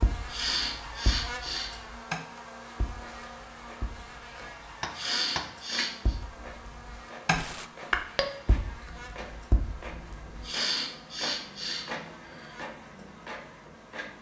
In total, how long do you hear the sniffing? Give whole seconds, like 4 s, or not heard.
5 s.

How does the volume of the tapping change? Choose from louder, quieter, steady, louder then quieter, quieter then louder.
louder then quieter.